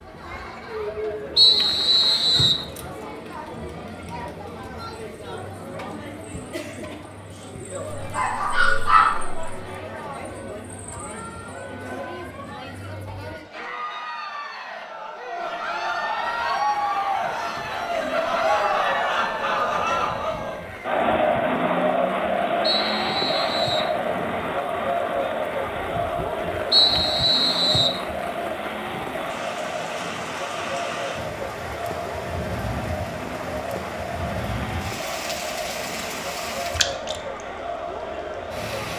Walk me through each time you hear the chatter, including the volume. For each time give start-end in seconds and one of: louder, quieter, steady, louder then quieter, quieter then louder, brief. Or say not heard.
0.0-38.9 louder then quieter.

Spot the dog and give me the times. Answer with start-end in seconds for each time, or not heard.
8.0-9.4.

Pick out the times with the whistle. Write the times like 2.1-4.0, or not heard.
1.4-2.6, 22.6-23.9, 26.7-28.0.